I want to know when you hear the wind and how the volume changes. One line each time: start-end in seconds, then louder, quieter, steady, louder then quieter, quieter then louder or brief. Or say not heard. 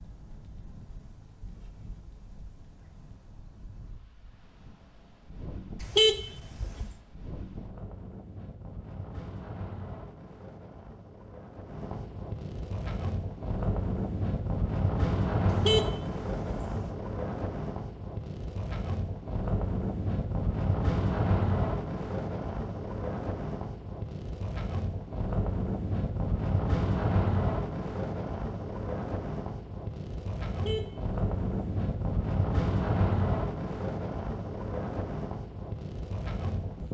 0.0-36.8 louder.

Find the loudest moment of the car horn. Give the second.
6 s.